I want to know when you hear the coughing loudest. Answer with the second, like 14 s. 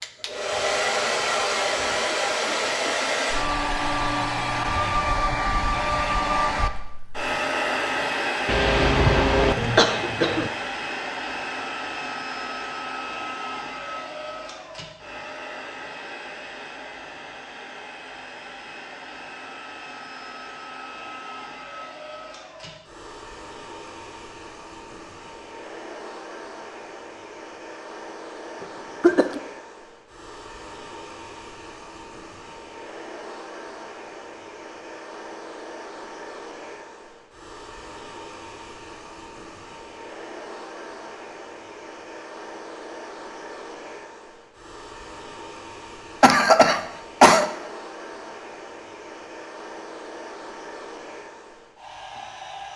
47 s.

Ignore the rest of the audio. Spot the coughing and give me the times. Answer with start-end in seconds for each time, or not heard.
8.4-10.5, 28.6-29.4, 46.2-47.5.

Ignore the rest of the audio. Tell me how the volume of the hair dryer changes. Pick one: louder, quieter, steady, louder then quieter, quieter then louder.
quieter.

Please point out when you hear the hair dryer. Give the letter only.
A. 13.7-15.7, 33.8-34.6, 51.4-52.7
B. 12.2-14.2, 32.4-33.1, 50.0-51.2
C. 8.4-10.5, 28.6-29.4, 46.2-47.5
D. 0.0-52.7
D.